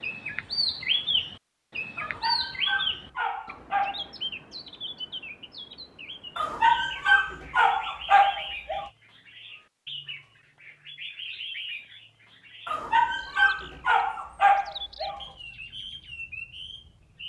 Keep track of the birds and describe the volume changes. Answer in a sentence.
The loudness of the birds goes down.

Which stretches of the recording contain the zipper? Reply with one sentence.
You can't hear the zipper here.